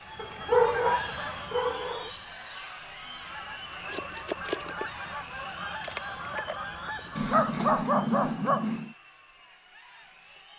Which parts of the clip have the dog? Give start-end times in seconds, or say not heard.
0.1-2.1, 7.2-8.9.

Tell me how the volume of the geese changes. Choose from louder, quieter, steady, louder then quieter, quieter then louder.
quieter then louder.